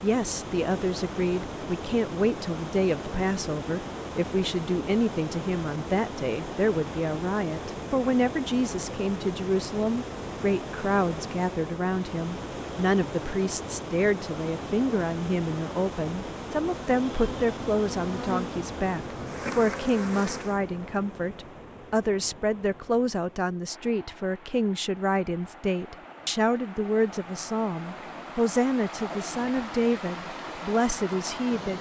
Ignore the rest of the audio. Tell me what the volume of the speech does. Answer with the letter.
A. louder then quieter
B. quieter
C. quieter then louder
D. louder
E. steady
E.